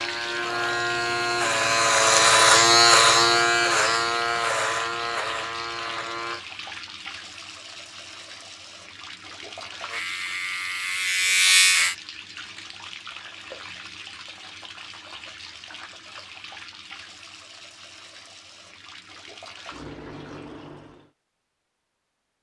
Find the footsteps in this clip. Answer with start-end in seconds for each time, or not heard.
not heard.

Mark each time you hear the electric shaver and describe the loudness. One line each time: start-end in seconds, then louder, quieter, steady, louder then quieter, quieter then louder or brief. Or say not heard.
0.0-6.5 louder then quieter
9.8-11.9 brief.